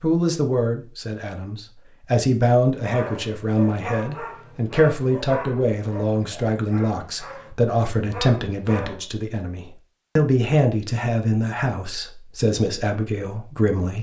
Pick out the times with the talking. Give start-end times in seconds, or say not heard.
0.0-13.9.